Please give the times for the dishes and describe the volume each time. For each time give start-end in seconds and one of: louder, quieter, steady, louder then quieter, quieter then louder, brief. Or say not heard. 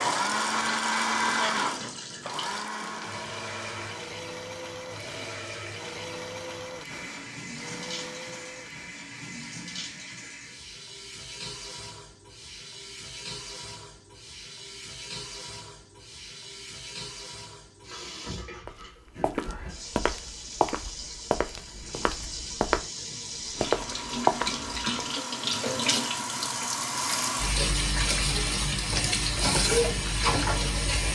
not heard.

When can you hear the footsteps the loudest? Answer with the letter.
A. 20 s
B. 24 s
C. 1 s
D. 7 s
B.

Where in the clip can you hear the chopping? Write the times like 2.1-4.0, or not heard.
not heard.